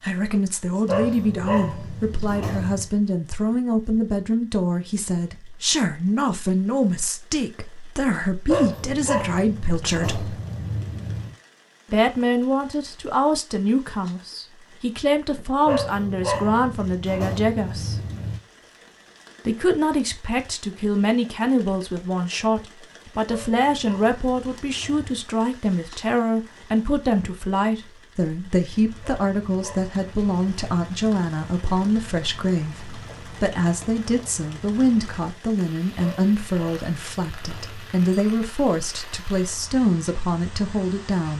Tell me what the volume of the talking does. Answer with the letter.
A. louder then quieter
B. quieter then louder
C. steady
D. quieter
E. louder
C.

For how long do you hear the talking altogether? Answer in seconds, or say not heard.
38 s.